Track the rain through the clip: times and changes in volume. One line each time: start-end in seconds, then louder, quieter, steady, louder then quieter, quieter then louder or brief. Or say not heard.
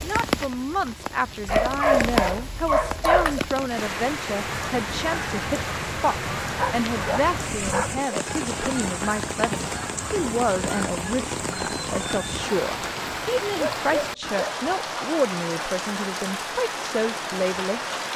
0.0-18.1 steady.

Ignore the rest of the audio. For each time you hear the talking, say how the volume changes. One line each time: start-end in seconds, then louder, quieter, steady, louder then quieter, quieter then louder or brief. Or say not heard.
0.0-17.9 steady.